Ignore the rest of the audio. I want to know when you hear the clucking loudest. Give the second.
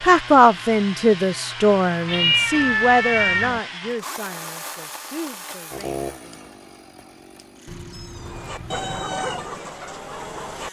9 s.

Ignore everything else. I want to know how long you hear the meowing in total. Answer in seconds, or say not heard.
3 s.